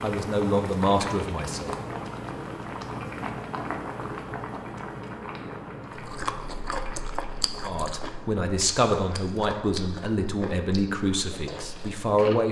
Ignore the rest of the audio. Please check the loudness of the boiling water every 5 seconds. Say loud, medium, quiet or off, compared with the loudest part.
loud, medium, quiet.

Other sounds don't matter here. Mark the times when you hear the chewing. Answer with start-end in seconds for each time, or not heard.
6.0-12.4.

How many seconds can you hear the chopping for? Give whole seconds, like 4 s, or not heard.
not heard.